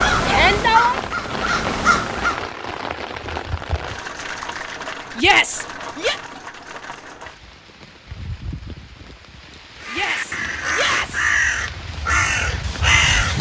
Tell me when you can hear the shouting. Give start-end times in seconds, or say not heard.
0.2-1.0, 5.2-6.2, 9.9-11.2.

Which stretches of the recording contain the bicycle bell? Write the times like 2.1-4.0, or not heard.
not heard.